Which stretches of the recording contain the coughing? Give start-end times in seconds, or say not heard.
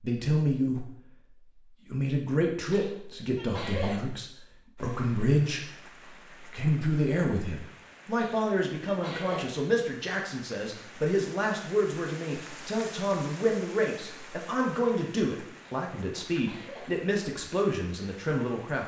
2.7-4.0, 8.2-9.4, 15.6-16.9.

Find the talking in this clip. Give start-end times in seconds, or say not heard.
0.0-0.9, 1.9-5.6, 6.5-18.8.